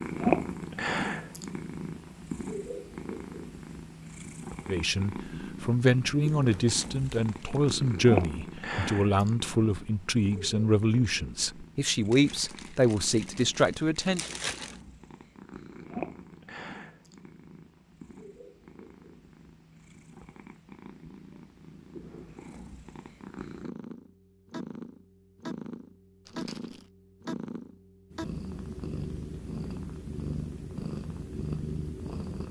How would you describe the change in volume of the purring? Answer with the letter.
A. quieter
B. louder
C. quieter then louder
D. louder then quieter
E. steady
C.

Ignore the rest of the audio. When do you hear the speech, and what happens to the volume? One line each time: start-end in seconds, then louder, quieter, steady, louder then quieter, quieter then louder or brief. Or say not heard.
4.7-14.3 steady.